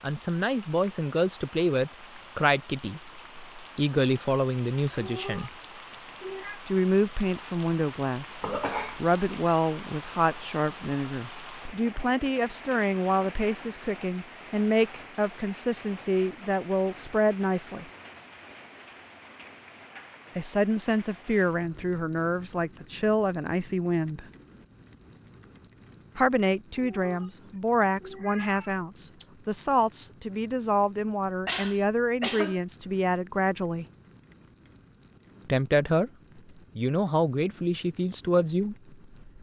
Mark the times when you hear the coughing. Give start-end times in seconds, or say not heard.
8.4-9.2, 31.4-32.6.